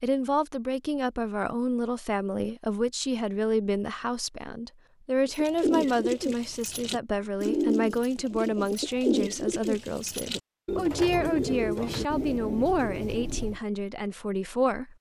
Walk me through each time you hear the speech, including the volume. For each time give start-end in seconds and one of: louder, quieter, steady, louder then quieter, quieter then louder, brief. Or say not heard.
0.0-14.9 steady.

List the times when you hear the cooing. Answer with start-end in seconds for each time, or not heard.
5.2-13.6.